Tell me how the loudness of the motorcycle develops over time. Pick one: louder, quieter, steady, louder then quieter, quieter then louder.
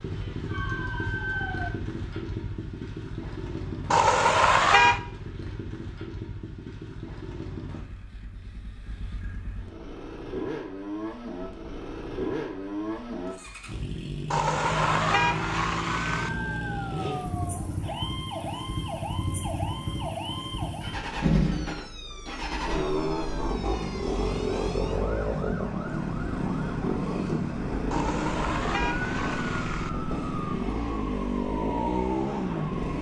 louder.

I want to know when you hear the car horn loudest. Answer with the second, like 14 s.
5 s.